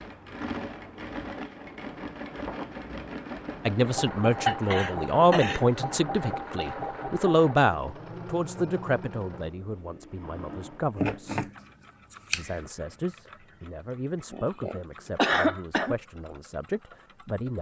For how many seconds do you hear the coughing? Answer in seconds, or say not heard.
3 s.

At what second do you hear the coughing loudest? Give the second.
15 s.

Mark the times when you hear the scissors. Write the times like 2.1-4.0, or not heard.
10.9-12.6.